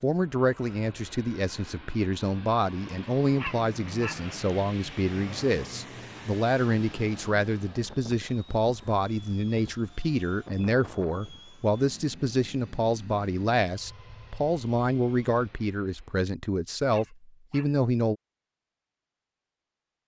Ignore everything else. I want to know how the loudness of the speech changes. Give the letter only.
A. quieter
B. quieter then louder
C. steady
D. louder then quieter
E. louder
C.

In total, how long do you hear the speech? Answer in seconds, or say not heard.
18 s.